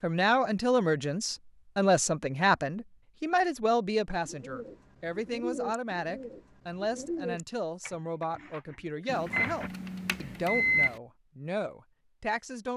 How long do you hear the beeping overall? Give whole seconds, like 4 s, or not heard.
2 s.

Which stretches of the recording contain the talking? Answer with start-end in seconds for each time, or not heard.
0.0-12.7.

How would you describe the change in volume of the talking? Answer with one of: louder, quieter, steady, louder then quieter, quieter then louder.
quieter.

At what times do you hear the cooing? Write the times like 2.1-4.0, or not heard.
4.2-9.7.